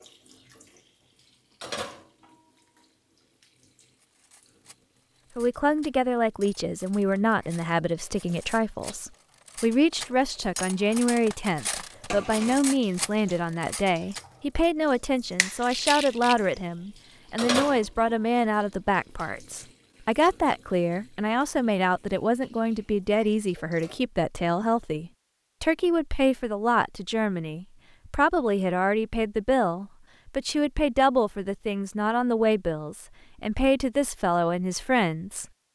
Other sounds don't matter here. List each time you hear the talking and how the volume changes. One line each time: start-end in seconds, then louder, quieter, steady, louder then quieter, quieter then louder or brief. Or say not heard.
5.3-35.5 steady.